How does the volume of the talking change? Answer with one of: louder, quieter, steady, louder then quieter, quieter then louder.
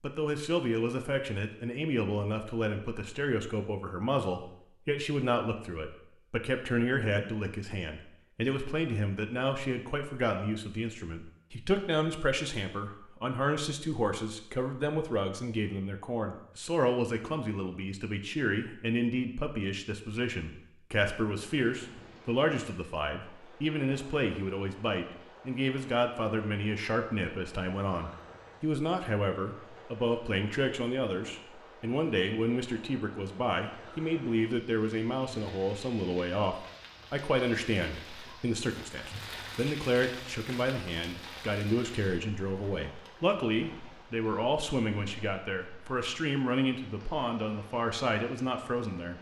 steady.